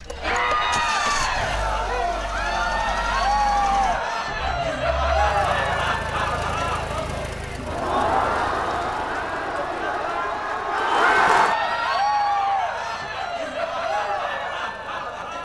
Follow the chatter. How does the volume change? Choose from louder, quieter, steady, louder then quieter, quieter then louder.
steady.